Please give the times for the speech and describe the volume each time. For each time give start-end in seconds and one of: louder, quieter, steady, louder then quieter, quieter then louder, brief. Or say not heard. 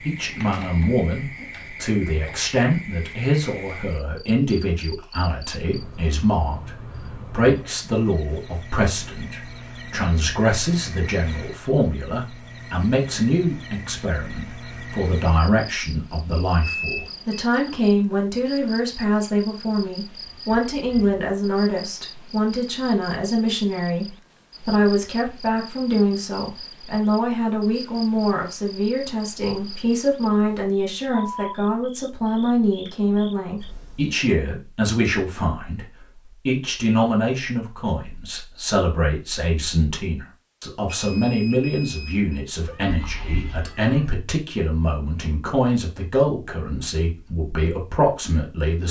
0.0-35.9 steady
36.5-48.8 steady.